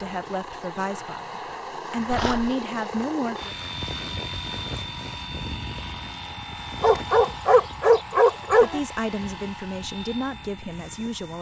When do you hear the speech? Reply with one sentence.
You can hear the speech from 0.0 to 3.5 s and from 8.5 to 11.3 s.